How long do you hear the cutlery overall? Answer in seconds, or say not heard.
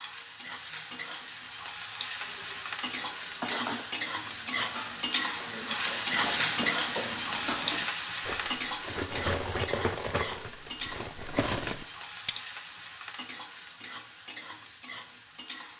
10 s.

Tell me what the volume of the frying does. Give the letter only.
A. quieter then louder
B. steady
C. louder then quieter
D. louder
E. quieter
C.